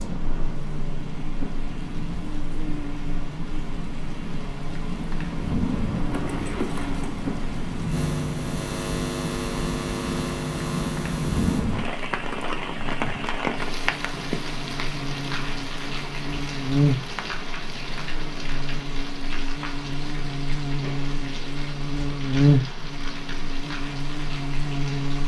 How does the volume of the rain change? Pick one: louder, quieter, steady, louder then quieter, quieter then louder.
louder then quieter.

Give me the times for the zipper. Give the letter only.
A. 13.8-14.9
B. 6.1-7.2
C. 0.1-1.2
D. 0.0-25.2
B.